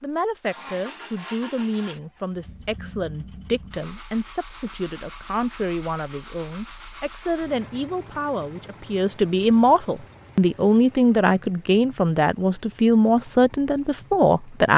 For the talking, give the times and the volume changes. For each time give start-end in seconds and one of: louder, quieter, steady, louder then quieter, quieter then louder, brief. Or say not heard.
0.0-14.7 louder.